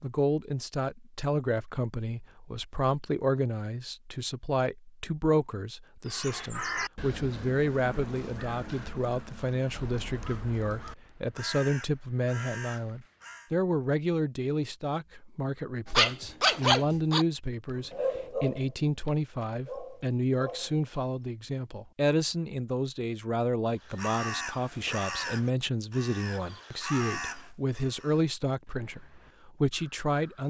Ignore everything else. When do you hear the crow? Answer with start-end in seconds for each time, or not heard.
6.0-13.5, 23.8-30.4.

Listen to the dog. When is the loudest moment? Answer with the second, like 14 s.
17 s.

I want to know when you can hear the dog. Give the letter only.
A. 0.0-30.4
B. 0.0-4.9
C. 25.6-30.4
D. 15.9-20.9
D.